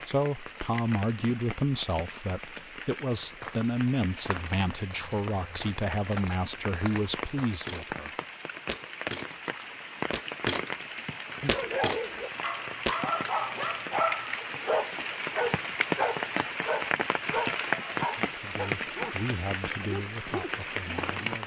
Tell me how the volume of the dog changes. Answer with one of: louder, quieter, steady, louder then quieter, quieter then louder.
quieter.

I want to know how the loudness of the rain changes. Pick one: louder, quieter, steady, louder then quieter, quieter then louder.
louder.